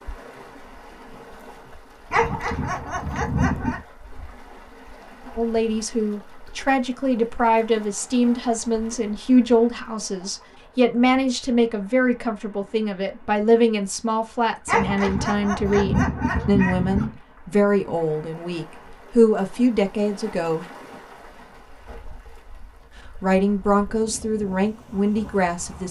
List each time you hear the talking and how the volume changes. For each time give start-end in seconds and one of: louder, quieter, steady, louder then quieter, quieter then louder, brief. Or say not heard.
5.3-20.6 steady
23.2-25.8 brief.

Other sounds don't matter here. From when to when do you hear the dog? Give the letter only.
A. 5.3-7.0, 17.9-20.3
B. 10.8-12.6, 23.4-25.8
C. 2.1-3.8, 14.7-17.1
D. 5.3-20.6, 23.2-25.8
C.